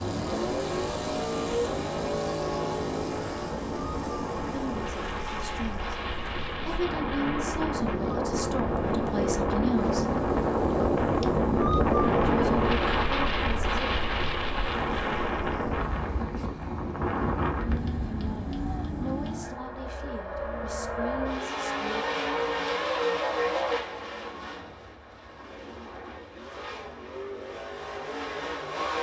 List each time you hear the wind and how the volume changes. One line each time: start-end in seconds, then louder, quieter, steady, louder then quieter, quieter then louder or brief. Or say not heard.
0.0-19.8 louder then quieter.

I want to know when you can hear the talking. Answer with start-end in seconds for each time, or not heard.
4.5-10.1, 12.2-13.9, 18.1-22.1.